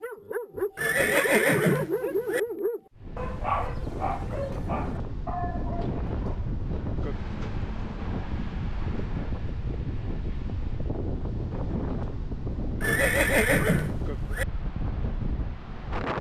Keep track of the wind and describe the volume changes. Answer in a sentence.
The loudness of the wind stays about the same.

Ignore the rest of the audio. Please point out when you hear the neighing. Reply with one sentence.
The neighing can be heard from 0.8 to 2.4 s and from 12.8 to 14.4 s.